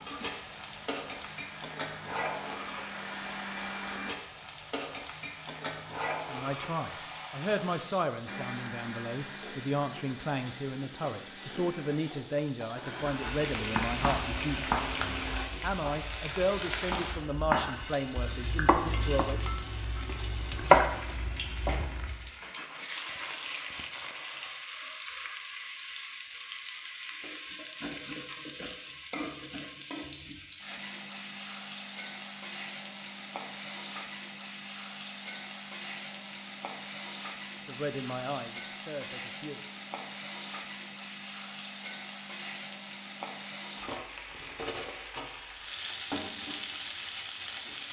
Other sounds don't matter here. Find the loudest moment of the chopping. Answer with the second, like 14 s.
21 s.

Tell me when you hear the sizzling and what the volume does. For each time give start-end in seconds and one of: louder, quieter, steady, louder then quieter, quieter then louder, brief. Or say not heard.
0.0-47.8 steady.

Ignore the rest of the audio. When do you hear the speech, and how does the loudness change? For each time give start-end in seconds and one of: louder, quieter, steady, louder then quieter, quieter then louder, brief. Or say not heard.
6.3-19.4 steady
37.6-39.6 brief.